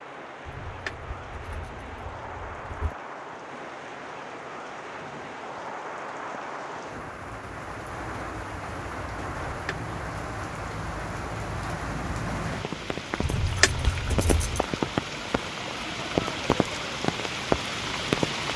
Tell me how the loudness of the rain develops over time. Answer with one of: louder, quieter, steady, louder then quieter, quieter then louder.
louder.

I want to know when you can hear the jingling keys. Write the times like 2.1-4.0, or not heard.
0.5-3.0, 9.5-9.9, 13.2-14.7.